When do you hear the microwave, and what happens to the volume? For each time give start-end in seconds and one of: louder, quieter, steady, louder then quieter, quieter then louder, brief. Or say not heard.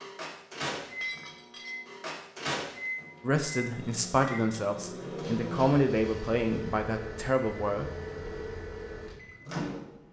0.0-10.0 steady.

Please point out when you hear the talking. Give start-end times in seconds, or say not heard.
3.2-7.8.